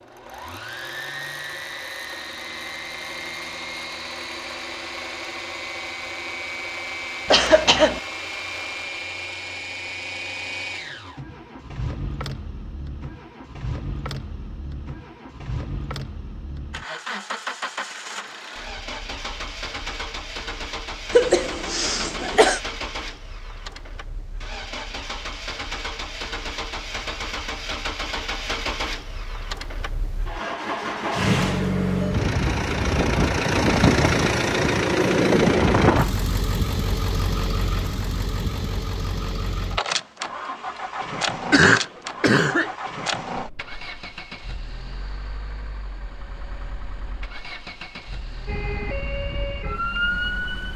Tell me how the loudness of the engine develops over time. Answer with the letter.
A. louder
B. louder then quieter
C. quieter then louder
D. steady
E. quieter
B.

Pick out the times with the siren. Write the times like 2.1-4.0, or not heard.
48.5-50.7.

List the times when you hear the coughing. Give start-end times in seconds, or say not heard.
7.2-8.0, 21.1-22.6, 41.5-42.8.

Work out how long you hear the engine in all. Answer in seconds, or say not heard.
51 s.